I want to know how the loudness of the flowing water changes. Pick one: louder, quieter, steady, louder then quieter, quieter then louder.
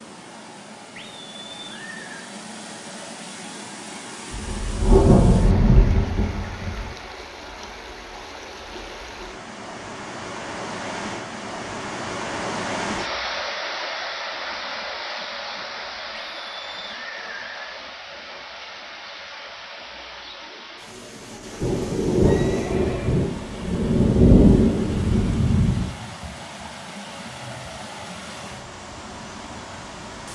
louder then quieter.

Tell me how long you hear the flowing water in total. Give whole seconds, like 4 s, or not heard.
30 s.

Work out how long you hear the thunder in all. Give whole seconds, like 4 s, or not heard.
7 s.